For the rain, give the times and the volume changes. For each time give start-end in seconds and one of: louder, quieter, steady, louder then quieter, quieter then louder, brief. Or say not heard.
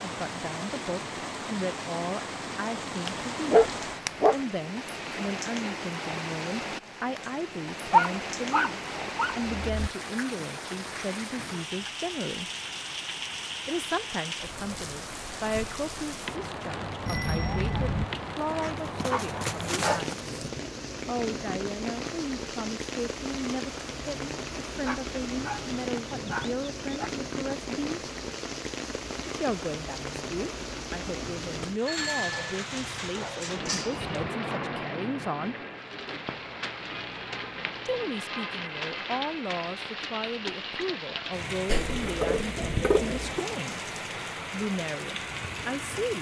0.0-46.1 steady.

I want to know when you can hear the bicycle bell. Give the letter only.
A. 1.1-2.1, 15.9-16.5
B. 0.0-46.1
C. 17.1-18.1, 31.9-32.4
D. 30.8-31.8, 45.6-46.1
C.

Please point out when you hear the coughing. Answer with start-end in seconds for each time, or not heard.
not heard.